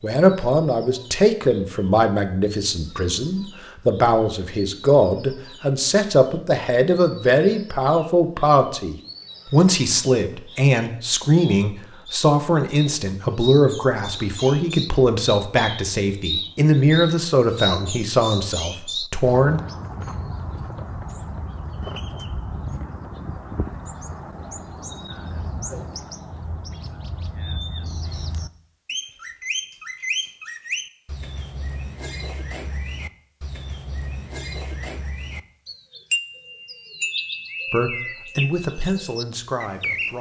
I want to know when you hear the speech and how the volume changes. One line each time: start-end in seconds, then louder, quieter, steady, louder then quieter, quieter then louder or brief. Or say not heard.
0.0-19.6 steady
37.7-40.1 brief.